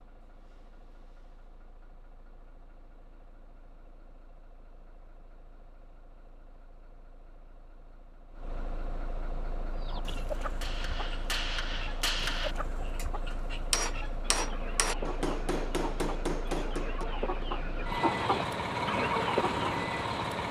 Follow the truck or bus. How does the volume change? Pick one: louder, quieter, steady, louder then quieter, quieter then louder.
louder.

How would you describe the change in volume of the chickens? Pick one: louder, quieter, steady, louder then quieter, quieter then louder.
louder.